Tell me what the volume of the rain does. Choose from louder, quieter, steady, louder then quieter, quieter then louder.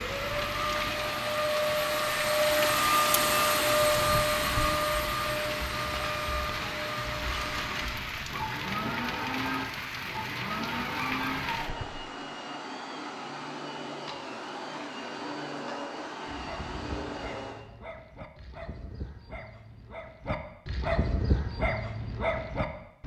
steady.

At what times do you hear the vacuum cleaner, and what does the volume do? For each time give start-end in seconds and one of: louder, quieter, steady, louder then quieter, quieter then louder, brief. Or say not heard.
0.0-17.7 quieter.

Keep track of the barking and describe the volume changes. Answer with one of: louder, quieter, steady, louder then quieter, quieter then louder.
louder.